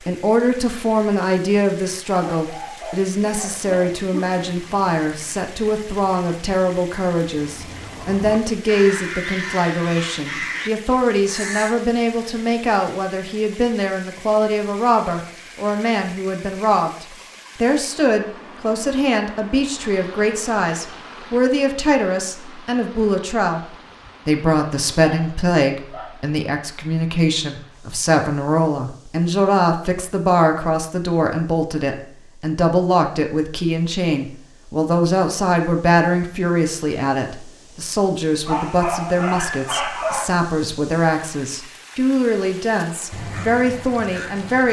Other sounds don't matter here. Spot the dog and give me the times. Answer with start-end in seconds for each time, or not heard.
2.2-4.5, 24.9-26.1, 38.5-40.2.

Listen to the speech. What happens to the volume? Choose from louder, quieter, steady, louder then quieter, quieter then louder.
steady.